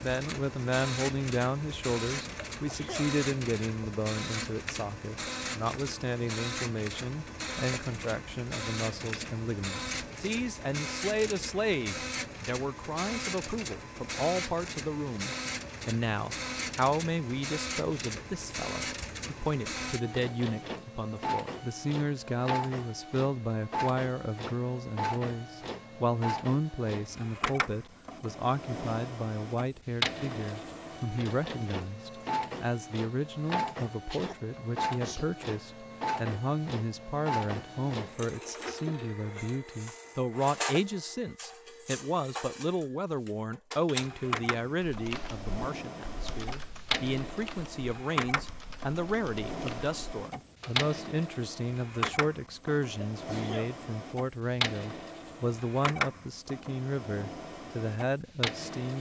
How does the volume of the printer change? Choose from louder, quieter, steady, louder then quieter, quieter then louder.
steady.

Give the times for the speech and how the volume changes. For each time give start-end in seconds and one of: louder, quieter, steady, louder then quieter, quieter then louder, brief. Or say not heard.
0.0-58.9 steady.